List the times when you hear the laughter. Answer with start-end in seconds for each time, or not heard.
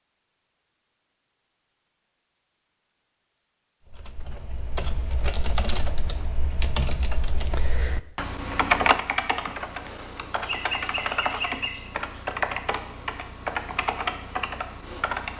10.4-11.9.